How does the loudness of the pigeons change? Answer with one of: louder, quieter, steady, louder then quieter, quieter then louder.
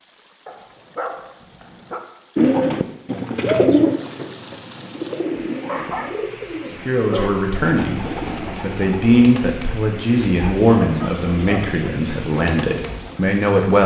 quieter.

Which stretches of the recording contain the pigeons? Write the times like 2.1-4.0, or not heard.
2.4-13.2.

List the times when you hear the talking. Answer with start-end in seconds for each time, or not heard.
6.7-13.8.